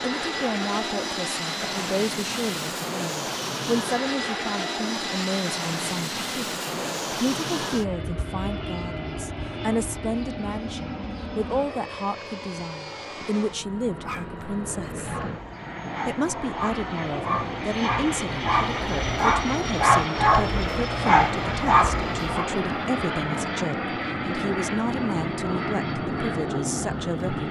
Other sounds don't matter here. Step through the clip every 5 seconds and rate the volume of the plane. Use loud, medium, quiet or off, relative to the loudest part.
loud, loud, medium, loud, loud, loud.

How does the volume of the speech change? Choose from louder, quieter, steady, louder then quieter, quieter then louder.
steady.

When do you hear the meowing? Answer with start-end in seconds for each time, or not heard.
not heard.